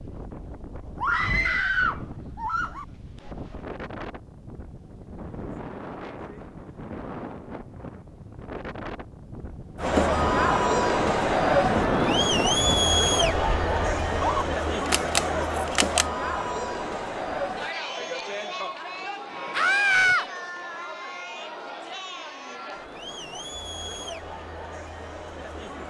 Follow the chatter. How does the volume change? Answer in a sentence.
The volume of the chatter goes down.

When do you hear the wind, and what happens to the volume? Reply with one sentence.
The wind can be heard from 0.0 to 14.3 s, getting louder.